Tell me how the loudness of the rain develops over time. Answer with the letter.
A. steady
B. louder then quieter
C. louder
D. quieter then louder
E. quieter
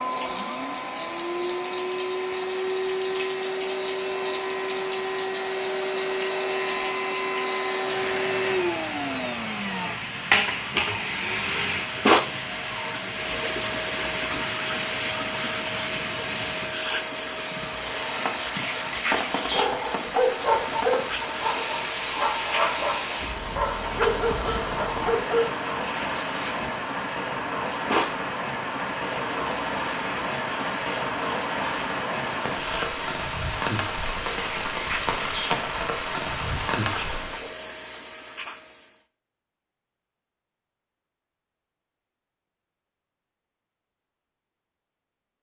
C.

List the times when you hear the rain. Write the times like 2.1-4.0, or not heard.
0.0-37.5.